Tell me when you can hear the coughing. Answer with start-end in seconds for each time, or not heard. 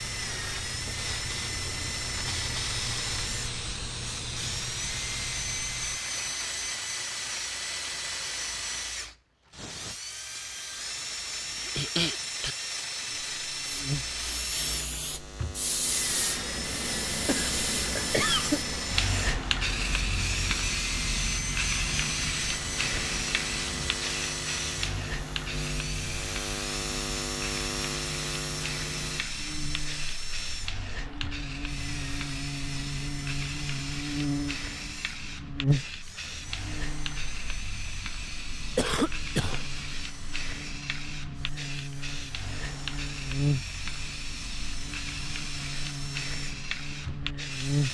10.8-12.6, 17.2-18.6, 38.8-39.6.